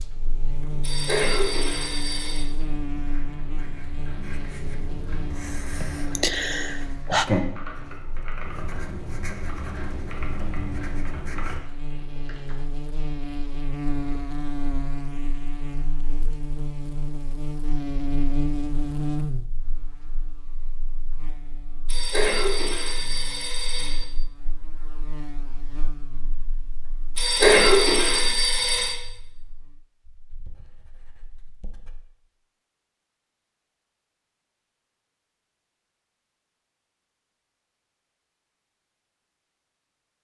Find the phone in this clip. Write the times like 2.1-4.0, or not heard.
0.8-2.5, 21.9-24.1, 27.1-28.9.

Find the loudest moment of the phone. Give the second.
28 s.